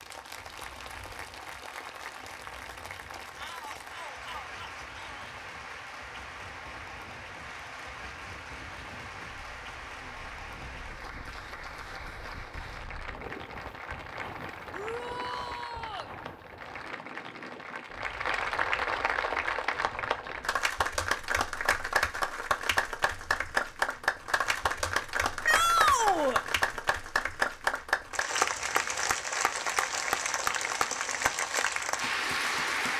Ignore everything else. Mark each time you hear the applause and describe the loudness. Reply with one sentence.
You can hear the applause from 0.0 to 32.9 s, getting louder.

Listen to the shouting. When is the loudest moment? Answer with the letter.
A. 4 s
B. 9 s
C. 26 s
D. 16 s
C.